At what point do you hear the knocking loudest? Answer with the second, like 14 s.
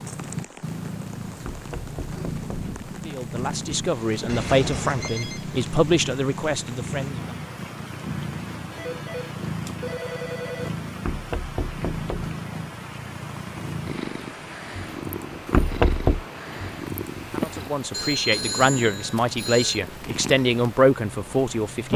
16 s.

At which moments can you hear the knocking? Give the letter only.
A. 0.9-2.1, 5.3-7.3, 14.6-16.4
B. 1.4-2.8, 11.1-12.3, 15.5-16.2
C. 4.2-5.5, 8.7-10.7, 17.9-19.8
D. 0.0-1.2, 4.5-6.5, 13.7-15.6
B.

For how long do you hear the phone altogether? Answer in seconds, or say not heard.
5 s.